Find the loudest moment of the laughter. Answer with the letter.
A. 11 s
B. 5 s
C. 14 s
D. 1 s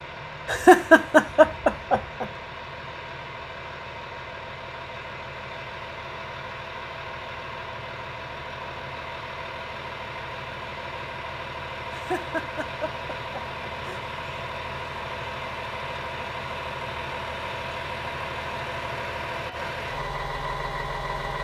D.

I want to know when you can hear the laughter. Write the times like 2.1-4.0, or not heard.
0.5-2.2, 11.9-14.0.